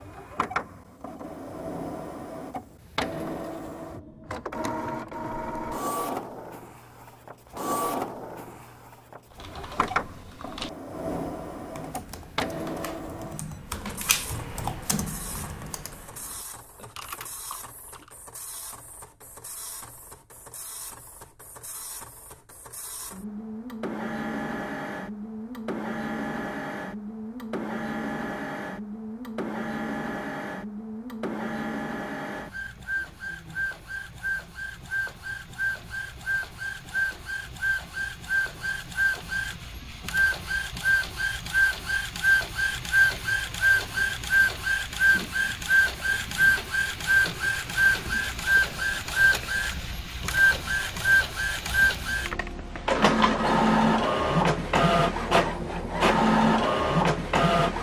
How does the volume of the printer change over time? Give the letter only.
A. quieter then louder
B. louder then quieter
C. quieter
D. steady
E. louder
A.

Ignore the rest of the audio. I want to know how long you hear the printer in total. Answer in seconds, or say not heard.
58 s.